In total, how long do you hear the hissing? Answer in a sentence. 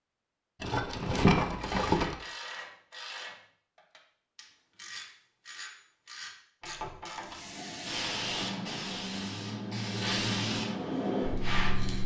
You can hear the hissing for 5 seconds altogether.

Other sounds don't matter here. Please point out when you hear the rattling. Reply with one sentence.
The rattling can be heard from 0.6 to 2.1 s.